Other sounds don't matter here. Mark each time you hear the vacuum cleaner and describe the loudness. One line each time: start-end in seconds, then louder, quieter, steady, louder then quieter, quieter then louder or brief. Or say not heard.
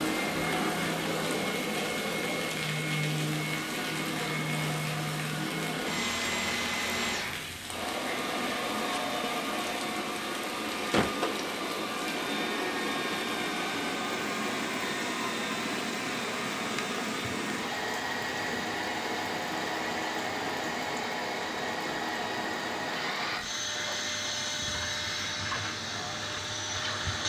0.0-27.2 steady.